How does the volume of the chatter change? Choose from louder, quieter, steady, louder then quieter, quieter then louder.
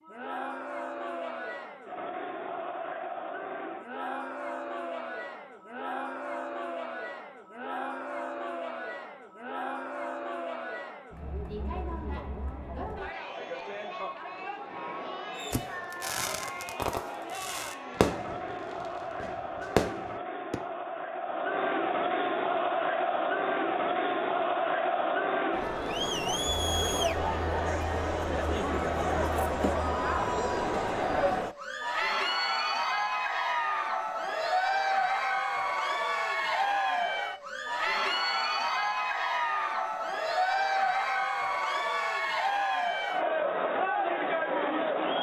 louder.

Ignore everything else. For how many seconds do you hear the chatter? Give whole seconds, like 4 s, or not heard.
45 s.